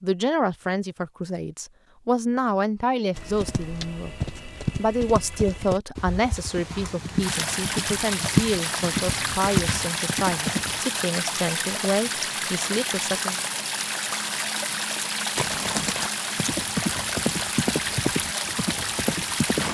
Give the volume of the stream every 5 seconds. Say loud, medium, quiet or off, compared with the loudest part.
off, loud, loud, loud.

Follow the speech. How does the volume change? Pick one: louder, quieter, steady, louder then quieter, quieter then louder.
steady.